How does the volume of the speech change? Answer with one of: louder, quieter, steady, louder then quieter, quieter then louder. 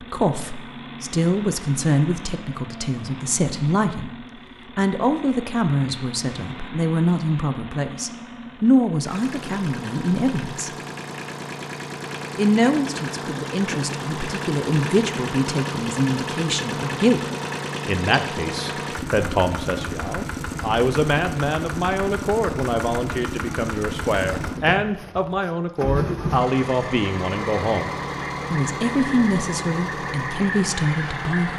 steady.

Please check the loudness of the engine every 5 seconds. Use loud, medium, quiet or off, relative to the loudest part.
medium, medium, loud, loud, loud, loud, loud.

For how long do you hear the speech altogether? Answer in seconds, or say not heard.
28 s.